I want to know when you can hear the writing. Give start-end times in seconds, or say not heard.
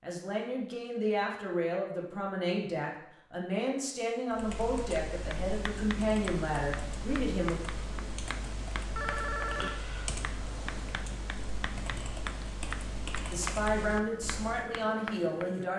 5.1-15.7.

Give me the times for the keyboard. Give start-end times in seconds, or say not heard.
4.3-14.7.